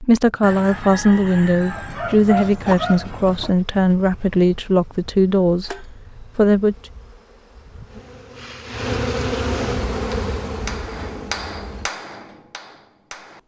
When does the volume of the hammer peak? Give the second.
11 s.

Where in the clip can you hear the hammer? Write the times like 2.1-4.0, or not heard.
9.9-13.4.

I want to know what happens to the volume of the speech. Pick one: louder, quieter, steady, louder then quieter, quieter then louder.
steady.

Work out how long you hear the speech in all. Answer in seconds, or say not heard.
7 s.